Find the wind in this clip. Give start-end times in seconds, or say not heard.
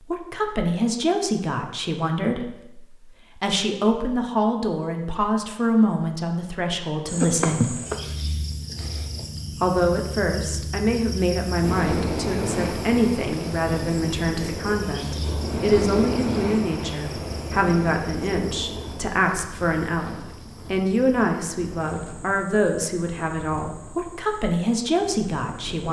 11.6-25.8.